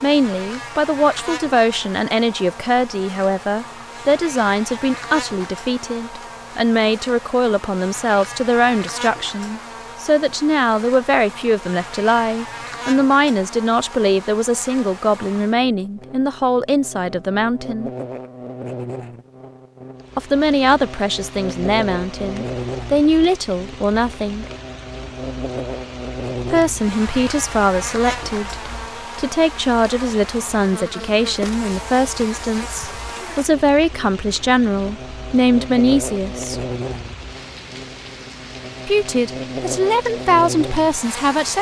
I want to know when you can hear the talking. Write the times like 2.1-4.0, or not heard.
0.0-17.9, 20.1-24.5, 26.5-36.6, 38.9-41.5.